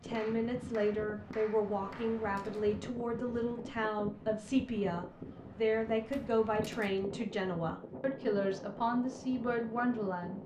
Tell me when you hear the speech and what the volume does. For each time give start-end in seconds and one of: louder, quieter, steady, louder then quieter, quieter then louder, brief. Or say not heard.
0.0-10.4 steady.